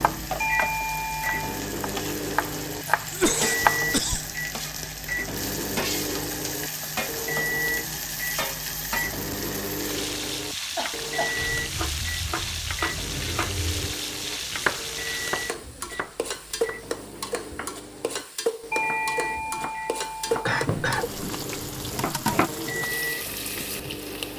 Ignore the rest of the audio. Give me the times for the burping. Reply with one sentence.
You can't hear the burping here.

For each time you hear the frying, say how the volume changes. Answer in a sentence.
You can hear the frying from 0.0 to 24.3 s, at a steady volume.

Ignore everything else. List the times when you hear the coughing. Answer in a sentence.
The coughing can be heard from 3.1 to 4.3 s, from 10.8 to 11.3 s and from 20.4 to 21.1 s.